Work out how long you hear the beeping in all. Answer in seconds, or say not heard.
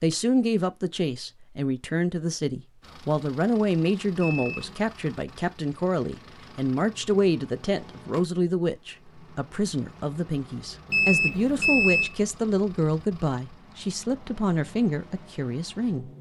2 s.